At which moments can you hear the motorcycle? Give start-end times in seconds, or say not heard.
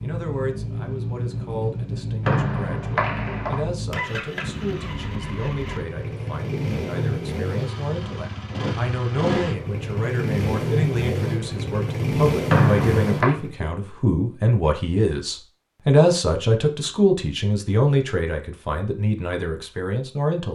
0.0-13.6.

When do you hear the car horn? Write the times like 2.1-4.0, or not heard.
not heard.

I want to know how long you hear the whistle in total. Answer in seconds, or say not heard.
2 s.